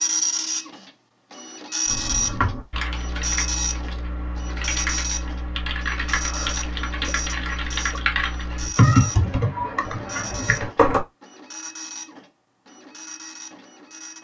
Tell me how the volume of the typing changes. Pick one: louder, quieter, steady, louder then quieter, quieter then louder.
louder.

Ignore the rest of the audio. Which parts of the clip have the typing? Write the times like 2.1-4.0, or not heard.
1.9-11.0.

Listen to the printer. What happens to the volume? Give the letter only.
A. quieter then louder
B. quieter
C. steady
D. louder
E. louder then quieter
B.